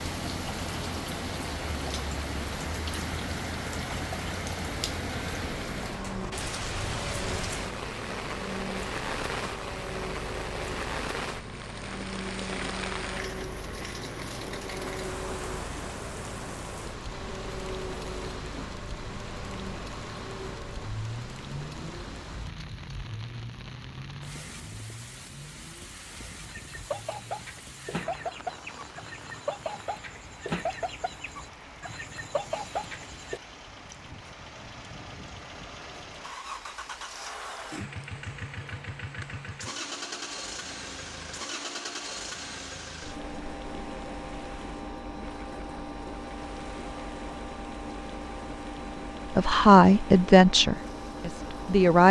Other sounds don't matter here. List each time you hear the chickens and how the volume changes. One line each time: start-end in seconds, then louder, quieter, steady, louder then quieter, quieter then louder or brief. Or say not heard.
26.4-33.4 steady.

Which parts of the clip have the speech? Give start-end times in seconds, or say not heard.
49.4-52.0.